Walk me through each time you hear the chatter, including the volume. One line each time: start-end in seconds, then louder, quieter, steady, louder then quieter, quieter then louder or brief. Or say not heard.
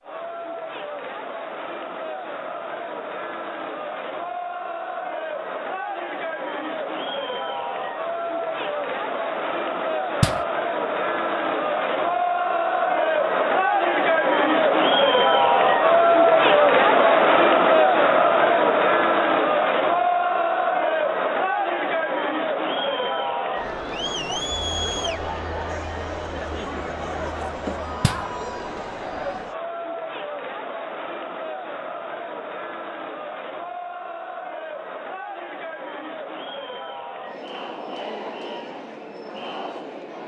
0.0-40.2 louder then quieter.